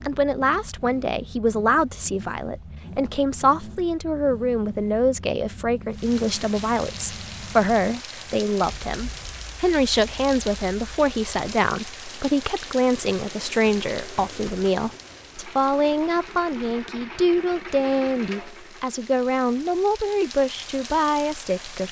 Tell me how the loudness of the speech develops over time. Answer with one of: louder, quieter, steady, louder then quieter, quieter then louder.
steady.